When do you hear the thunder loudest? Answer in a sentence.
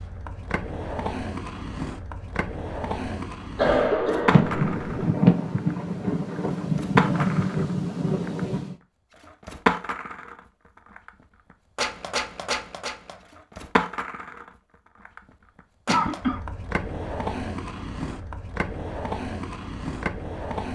The volume of the thunder peaks at 5 seconds.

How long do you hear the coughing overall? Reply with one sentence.
The coughing can be heard for 2 seconds in total.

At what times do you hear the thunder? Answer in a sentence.
You can hear the thunder from 4.2 to 8.8 s.